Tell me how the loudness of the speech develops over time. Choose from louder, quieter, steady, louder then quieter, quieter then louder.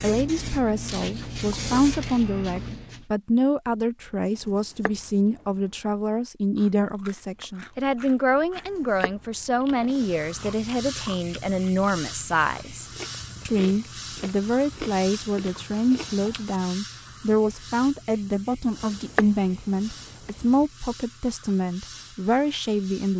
steady.